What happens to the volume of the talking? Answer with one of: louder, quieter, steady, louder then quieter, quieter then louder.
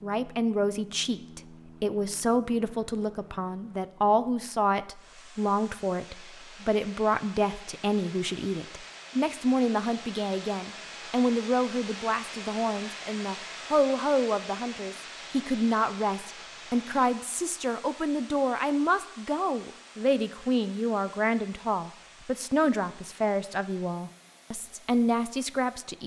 steady.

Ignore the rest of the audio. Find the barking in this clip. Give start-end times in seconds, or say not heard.
not heard.